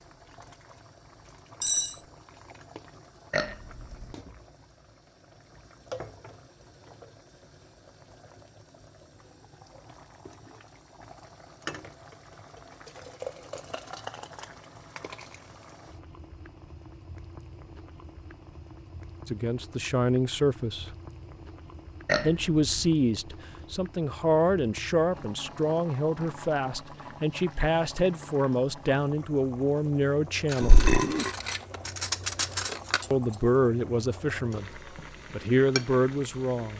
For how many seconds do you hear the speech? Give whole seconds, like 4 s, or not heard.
14 s.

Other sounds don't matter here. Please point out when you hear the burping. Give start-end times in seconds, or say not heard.
3.3-4.2, 22.1-22.9, 30.6-31.3.